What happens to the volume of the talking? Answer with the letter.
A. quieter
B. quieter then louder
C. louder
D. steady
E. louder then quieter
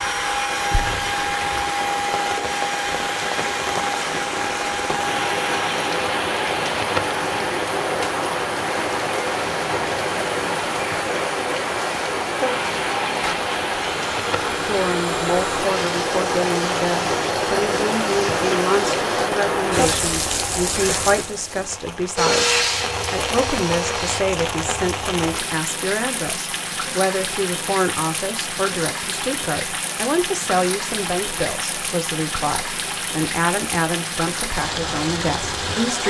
D.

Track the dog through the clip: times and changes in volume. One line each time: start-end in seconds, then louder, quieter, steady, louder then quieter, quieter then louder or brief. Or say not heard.
not heard.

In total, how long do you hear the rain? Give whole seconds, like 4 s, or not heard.
36 s.